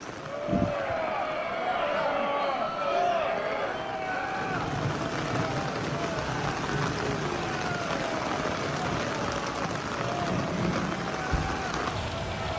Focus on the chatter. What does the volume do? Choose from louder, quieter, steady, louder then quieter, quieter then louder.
quieter.